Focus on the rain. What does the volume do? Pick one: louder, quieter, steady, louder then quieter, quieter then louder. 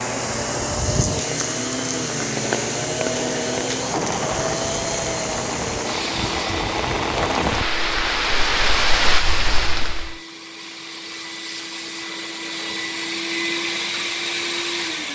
louder.